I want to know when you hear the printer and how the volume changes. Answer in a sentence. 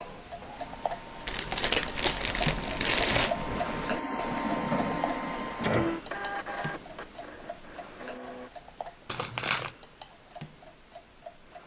The printer can be heard from 0.2 to 8.5 s, getting louder then quieter.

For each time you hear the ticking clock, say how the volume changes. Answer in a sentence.
You can hear the ticking clock from 0.0 to 11.6 s, getting quieter.